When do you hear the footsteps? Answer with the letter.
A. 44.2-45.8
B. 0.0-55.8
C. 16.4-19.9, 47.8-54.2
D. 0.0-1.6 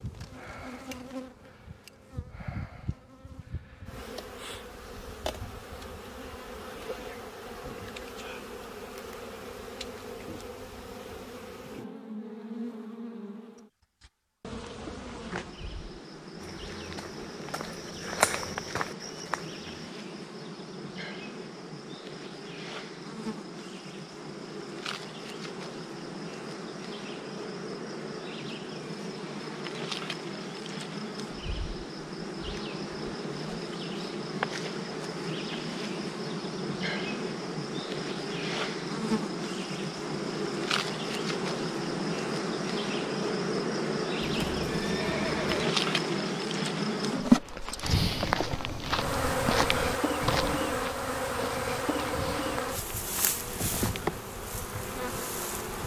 C.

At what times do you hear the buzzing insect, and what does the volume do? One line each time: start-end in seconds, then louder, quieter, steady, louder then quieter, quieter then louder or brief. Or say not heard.
0.0-55.8 louder.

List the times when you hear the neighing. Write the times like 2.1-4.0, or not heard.
44.2-45.8.